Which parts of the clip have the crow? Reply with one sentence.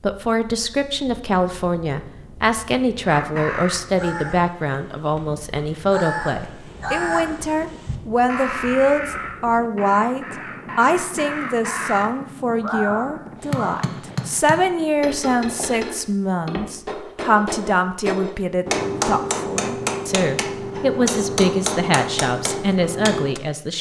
You can hear the crow from 3.0 to 13.8 s.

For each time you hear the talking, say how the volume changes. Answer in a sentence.
You can hear the talking from 0.0 to 23.7 s, at a steady volume.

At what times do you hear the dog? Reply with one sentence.
You can't hear the dog here.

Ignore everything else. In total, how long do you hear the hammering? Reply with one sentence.
The hammering can be heard for 10 seconds in total.